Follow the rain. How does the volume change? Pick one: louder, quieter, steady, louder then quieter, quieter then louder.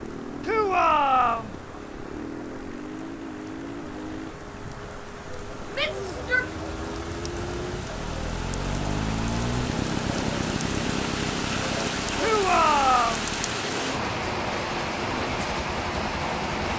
louder.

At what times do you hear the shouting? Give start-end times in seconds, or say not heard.
0.5-1.5, 5.7-6.5, 12.2-13.2.